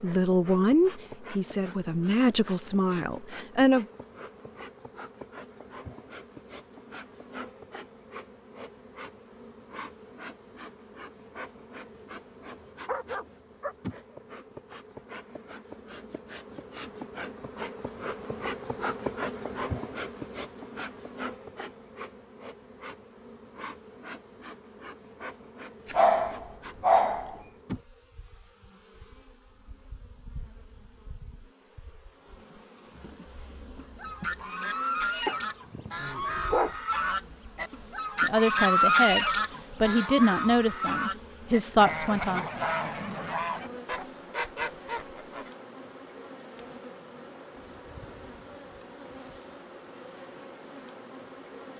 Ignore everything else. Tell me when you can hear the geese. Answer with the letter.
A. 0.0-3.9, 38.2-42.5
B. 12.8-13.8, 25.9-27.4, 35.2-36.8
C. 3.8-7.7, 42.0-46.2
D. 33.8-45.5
D.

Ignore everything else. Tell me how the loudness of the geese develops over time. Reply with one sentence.
The loudness of the geese goes up, then down.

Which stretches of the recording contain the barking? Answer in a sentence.
You can hear the barking from 12.8 to 13.8 s, from 25.9 to 27.4 s and from 35.2 to 36.8 s.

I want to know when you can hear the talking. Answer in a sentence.
You can hear the talking from 0.0 to 3.9 s and from 38.2 to 42.5 s.